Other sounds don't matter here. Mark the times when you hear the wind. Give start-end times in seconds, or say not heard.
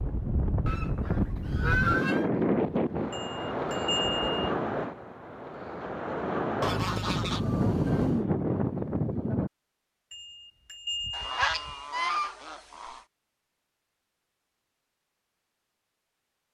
0.0-9.5.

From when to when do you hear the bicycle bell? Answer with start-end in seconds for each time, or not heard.
3.1-4.5, 10.1-11.8.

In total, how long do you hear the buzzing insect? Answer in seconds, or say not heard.
not heard.